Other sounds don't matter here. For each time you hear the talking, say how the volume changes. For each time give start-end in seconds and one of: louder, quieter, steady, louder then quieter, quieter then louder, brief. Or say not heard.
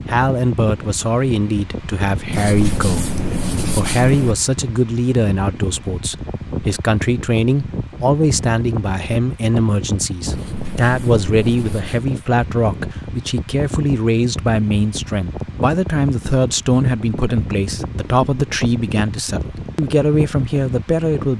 0.1-21.3 steady.